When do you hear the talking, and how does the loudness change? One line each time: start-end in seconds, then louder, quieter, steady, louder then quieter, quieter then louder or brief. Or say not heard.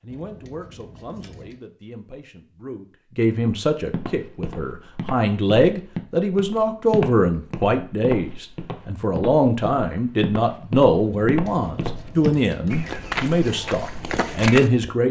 0.0-15.0 louder.